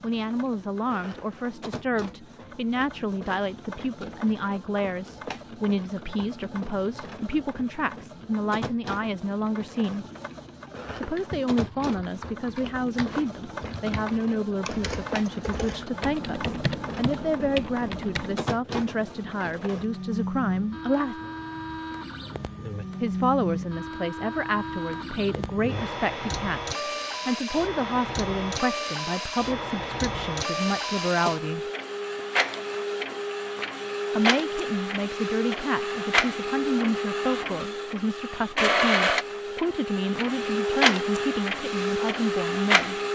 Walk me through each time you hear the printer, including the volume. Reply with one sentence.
You can hear the printer from 0.0 to 43.1 s, getting louder.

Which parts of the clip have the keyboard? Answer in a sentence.
The keyboard can be heard from 10.8 to 18.4 s.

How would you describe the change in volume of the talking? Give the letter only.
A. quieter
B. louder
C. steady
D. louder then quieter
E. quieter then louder
C.